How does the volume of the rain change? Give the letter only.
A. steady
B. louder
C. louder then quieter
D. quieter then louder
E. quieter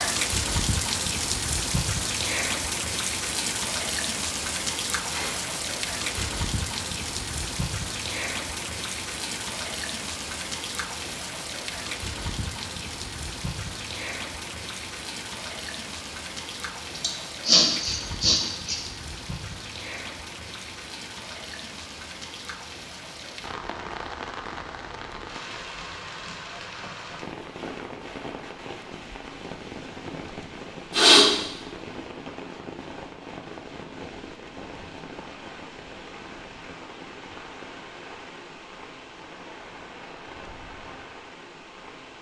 E.